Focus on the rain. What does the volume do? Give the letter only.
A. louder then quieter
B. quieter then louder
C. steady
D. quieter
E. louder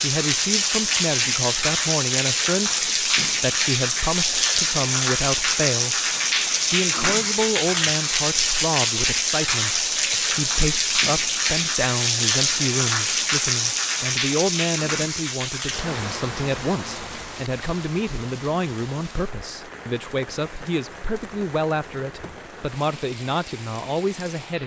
D.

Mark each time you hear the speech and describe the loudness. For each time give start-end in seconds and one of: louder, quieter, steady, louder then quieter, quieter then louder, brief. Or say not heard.
0.0-6.0 steady
6.7-24.6 steady.